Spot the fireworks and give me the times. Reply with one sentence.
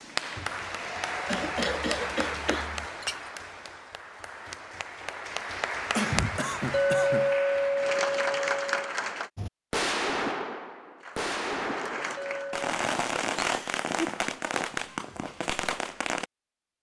The fireworks can be heard from 9.3 to 16.2 s.